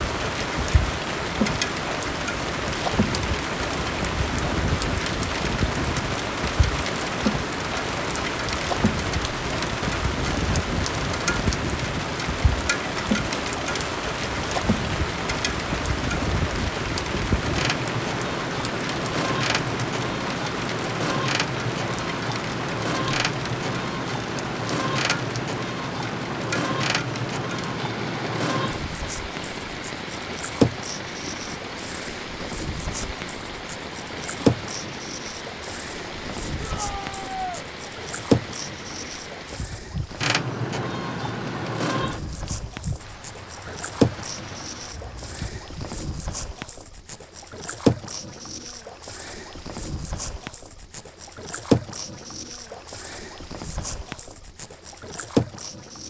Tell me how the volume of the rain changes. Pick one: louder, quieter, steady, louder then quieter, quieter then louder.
quieter.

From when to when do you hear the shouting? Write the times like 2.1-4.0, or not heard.
36.6-37.6.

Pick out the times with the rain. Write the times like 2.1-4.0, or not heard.
0.0-45.8.